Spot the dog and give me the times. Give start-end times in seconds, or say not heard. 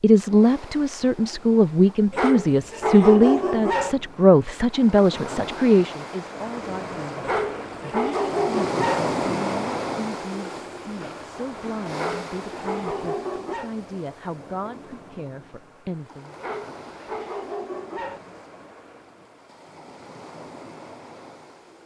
2.1-4.0, 7.2-9.1, 11.9-13.7, 16.4-18.2.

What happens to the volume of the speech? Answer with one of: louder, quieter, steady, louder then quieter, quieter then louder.
quieter.